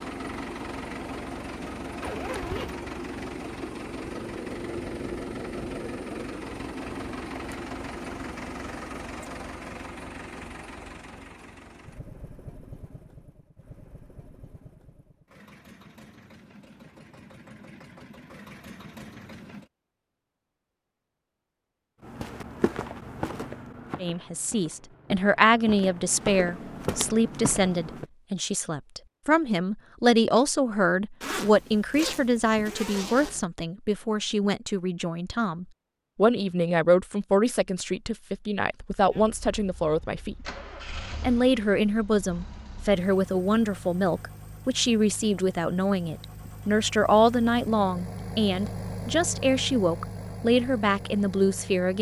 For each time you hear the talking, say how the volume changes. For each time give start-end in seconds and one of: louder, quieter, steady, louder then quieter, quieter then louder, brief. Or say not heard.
24.0-40.5 steady
41.2-51.9 steady.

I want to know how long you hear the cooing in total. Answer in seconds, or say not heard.
not heard.